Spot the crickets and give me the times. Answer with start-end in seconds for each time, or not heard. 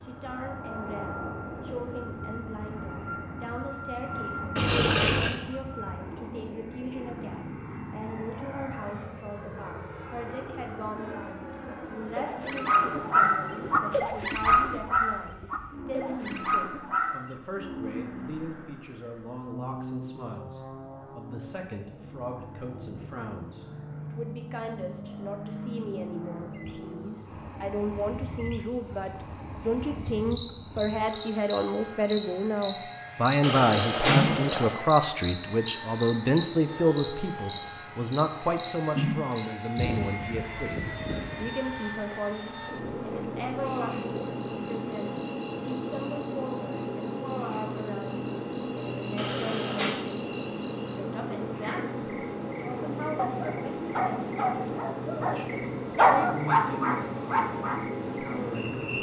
25.9-58.9.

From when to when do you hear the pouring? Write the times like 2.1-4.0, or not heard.
4.5-5.3, 33.4-34.8, 49.1-50.0.